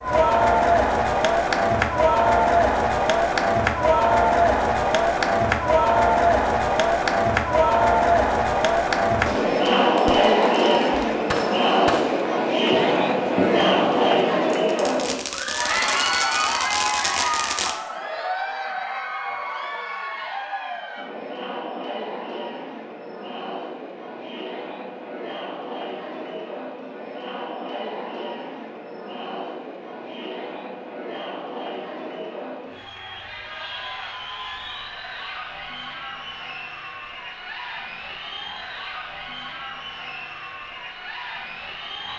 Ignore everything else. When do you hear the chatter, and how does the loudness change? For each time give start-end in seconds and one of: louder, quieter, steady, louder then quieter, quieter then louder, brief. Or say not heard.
0.0-42.1 quieter.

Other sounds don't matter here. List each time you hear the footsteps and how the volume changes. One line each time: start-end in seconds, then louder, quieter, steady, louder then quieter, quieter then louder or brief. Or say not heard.
not heard.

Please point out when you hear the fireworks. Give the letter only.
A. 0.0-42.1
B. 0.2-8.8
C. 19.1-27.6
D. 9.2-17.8
D.